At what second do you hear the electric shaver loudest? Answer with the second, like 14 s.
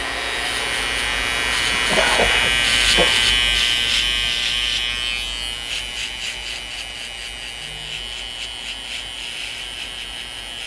3 s.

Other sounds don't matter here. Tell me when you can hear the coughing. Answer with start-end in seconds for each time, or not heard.
1.7-3.2.